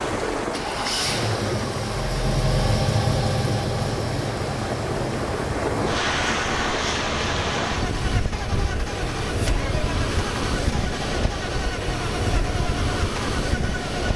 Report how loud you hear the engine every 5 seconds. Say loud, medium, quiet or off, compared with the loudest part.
loud, medium, medium.